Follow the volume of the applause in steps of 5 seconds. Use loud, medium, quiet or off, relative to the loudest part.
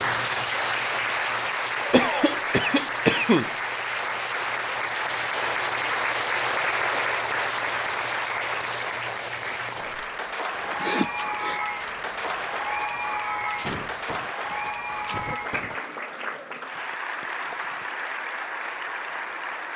loud, loud, loud, medium.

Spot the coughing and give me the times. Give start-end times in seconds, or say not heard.
1.9-3.5, 10.6-11.6, 13.6-15.8.